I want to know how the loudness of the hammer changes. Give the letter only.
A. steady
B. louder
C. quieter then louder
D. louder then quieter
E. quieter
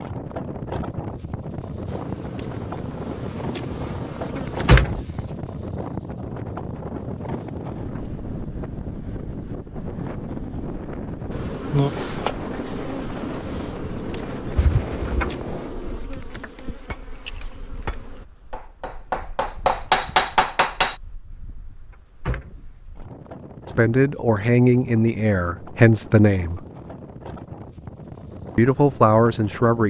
B.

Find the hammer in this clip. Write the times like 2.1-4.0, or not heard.
14.1-20.9.